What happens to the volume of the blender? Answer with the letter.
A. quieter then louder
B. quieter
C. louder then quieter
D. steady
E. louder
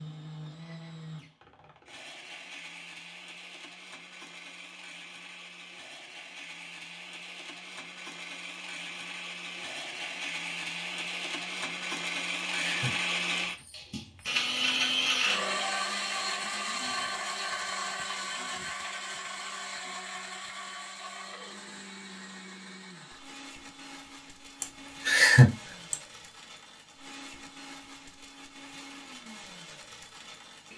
C.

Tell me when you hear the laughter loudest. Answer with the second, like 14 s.
25 s.